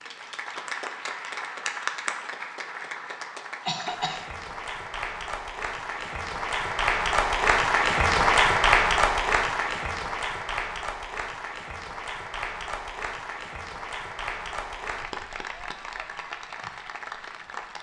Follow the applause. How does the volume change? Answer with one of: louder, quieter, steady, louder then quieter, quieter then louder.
louder then quieter.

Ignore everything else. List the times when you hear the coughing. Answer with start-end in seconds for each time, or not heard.
3.6-4.2.